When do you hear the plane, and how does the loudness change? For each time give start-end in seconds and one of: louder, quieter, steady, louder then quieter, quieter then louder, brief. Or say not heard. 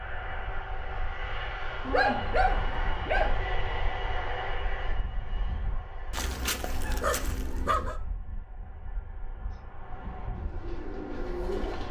0.0-11.8 quieter then louder.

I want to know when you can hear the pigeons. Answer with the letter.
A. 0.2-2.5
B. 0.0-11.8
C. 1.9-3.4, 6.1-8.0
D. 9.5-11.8
D.